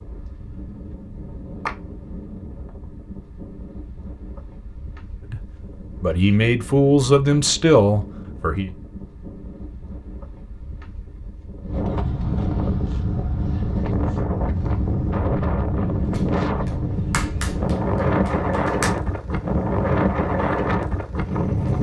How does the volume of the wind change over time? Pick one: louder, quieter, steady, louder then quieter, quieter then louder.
louder.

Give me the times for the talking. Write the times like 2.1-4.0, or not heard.
5.3-8.7.